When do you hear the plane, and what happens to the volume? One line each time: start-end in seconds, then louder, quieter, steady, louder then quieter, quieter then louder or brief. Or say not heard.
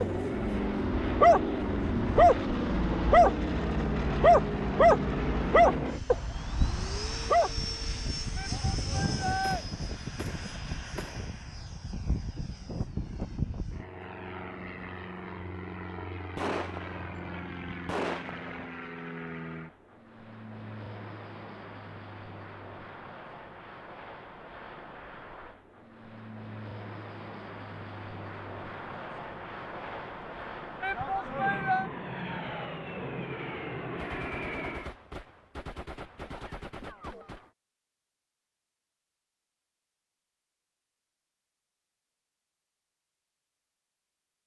0.0-35.0 quieter then louder.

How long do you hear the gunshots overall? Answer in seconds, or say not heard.
8 s.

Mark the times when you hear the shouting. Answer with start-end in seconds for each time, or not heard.
8.3-9.7, 30.8-31.9.